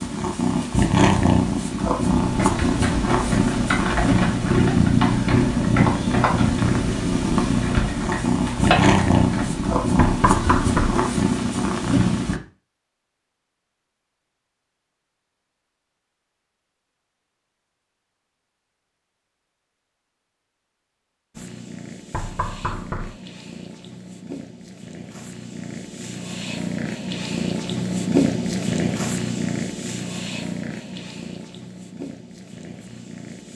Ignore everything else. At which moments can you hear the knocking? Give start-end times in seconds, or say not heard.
9.9-11.0, 22.1-23.1.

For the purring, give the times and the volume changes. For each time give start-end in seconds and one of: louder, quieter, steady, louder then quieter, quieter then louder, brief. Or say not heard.
0.0-12.4 steady
21.3-33.5 louder then quieter.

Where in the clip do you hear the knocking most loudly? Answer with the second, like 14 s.
11 s.